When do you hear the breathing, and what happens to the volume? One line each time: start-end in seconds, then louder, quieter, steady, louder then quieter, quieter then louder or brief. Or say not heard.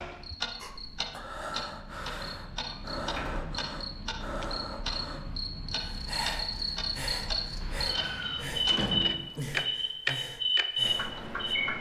0.6-11.6 steady.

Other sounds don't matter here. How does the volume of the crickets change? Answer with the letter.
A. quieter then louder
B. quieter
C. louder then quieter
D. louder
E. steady
D.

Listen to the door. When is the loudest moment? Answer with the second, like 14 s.
9 s.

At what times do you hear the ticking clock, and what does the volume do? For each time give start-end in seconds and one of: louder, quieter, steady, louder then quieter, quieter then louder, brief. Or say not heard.
0.0-11.7 louder.